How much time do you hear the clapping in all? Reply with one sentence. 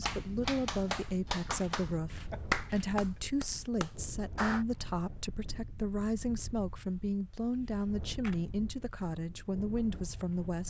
The clapping can be heard for 5 seconds in total.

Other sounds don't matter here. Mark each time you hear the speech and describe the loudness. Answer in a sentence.
The speech can be heard from 0.0 to 10.6 s, at a steady volume.